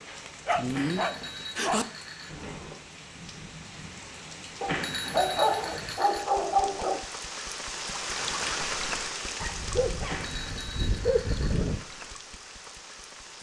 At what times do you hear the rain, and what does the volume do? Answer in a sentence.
You can hear the rain from 0.0 to 13.3 s, getting louder then quieter.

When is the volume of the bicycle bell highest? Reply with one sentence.
The volume of the bicycle bell peaks at 5 seconds.